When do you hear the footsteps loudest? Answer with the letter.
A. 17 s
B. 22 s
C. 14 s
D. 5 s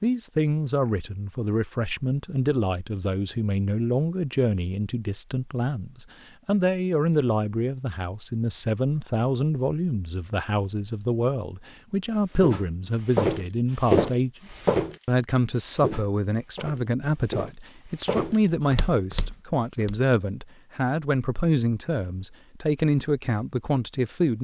C.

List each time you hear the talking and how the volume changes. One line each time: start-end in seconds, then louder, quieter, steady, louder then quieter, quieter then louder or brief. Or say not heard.
0.0-14.4 steady
15.1-24.4 steady.